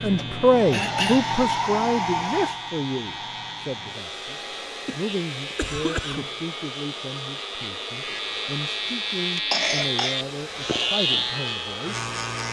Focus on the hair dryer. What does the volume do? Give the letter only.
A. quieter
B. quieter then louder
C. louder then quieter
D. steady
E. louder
A.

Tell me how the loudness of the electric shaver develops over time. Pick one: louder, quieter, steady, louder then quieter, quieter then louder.
louder.